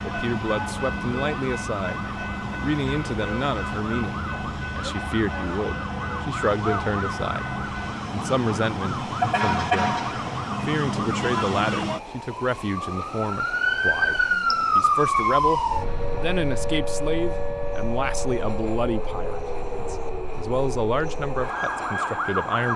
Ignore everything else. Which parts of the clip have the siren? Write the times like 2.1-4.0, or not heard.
0.0-22.7.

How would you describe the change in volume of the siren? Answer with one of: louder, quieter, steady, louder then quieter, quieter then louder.
louder then quieter.